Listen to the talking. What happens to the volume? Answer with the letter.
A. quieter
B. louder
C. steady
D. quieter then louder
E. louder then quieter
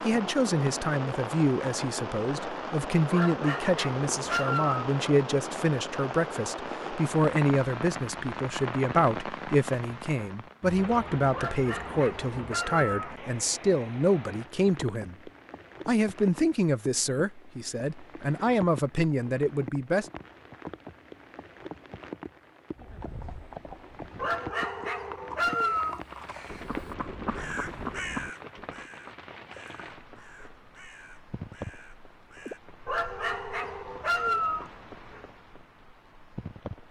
C.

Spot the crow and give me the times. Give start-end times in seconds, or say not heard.
25.6-32.6.